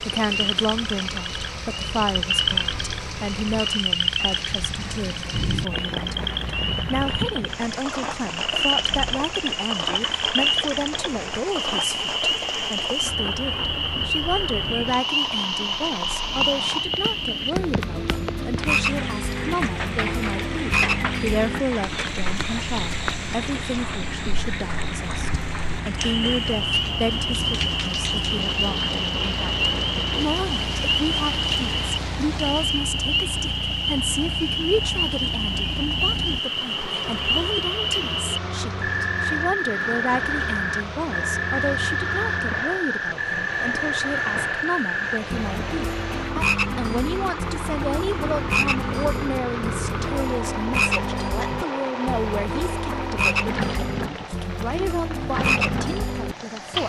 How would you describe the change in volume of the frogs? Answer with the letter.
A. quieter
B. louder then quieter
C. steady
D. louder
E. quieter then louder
C.